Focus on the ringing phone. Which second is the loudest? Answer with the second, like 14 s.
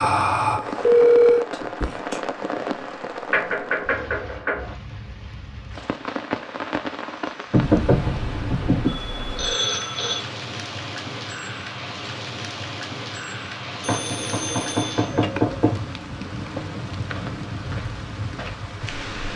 1 s.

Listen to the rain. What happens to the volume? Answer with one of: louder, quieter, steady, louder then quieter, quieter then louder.
steady.